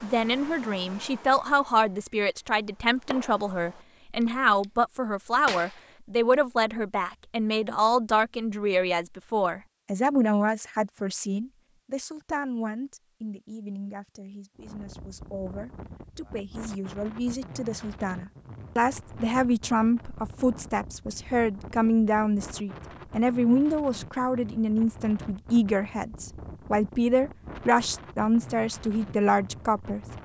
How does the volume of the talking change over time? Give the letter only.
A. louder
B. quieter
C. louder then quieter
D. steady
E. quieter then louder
E.